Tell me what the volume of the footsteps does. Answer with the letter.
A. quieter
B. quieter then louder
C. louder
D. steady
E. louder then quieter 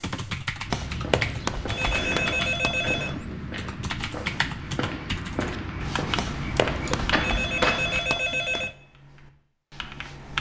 C.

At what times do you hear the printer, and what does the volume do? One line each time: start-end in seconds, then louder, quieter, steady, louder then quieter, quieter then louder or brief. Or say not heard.
not heard.